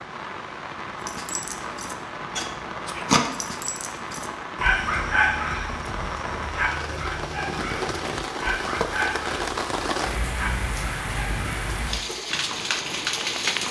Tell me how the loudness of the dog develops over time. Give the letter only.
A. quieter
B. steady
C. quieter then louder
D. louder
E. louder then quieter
A.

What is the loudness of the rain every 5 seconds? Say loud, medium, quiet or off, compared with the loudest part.
medium, loud, loud.